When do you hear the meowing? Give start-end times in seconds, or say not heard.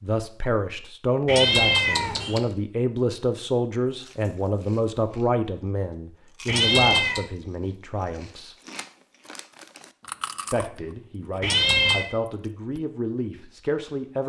1.2-2.4, 6.5-7.2, 11.4-12.1.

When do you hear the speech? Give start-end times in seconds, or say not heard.
0.0-8.6, 10.5-14.2.